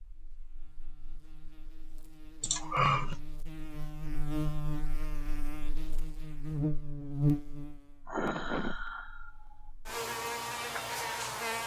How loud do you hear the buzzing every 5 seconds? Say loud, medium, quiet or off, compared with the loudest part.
medium, loud, loud.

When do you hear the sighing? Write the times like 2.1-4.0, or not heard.
2.4-3.2, 8.1-9.6.